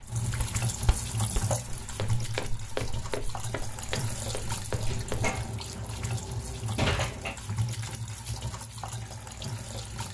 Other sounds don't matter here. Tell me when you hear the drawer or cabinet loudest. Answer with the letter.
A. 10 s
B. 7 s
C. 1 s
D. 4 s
B.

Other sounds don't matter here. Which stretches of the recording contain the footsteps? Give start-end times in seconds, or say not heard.
0.0-5.3.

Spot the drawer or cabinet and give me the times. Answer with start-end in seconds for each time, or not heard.
4.8-7.3.